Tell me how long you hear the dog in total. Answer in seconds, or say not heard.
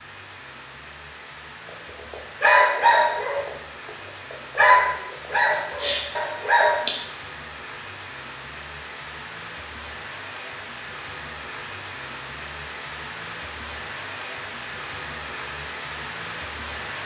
5 s.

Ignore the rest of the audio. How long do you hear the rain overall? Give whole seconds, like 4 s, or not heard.
17 s.